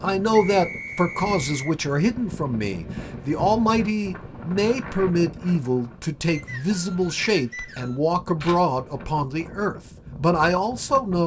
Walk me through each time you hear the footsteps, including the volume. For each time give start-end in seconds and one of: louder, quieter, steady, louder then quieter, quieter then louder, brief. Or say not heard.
not heard.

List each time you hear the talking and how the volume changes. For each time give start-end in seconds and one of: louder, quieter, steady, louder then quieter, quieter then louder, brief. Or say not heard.
0.0-11.2 steady.